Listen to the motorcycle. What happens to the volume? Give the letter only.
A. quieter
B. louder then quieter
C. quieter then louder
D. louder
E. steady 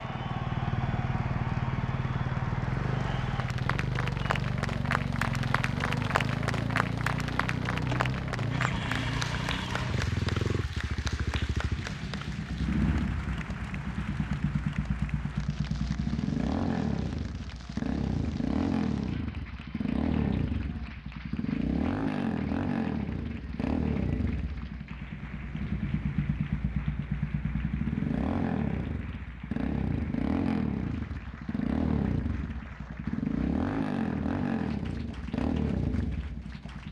E.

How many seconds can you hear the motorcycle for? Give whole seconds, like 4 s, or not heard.
37 s.